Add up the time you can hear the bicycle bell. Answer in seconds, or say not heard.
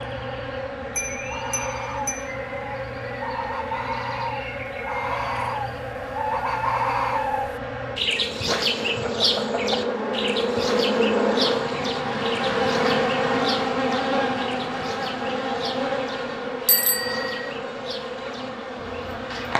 3 s.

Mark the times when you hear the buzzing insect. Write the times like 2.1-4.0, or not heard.
0.0-19.5.